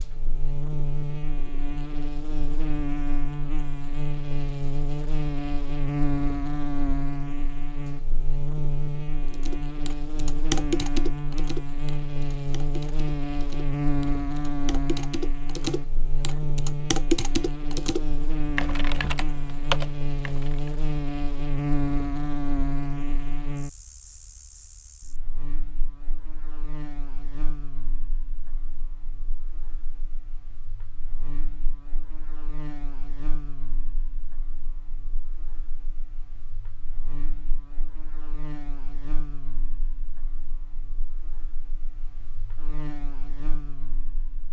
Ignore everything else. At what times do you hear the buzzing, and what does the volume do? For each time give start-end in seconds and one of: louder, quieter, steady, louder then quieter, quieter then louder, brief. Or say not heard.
0.0-44.4 quieter.